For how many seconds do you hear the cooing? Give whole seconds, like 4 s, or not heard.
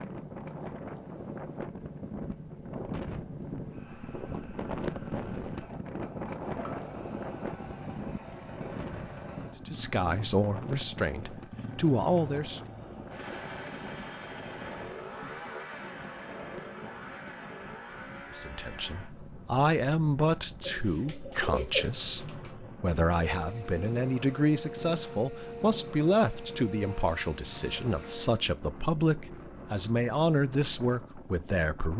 2 s.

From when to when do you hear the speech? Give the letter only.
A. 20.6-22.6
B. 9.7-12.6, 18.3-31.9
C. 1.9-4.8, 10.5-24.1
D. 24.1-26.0
B.